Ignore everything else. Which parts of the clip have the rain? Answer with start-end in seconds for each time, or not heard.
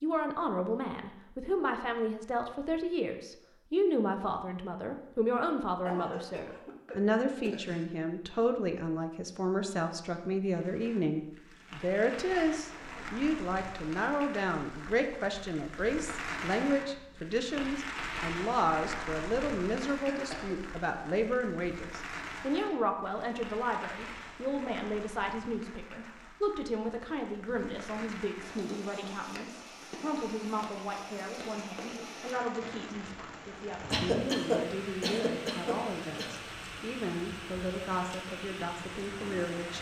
10.4-39.7.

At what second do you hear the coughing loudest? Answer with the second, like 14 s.
34 s.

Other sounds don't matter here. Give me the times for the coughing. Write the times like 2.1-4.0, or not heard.
5.8-7.8, 19.9-20.6, 33.9-36.4.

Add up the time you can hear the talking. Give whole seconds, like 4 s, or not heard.
40 s.